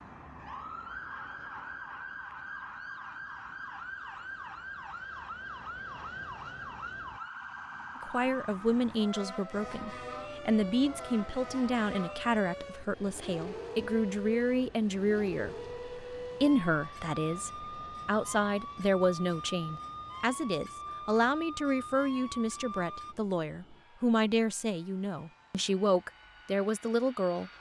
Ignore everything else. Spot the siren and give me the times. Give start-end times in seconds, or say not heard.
0.0-23.1.